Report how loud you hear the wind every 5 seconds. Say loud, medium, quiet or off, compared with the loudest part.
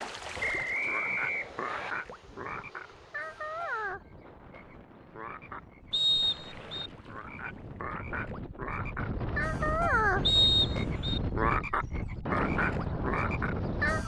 quiet, medium, loud.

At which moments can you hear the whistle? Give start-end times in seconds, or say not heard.
0.4-1.9, 5.9-6.9, 10.2-11.2.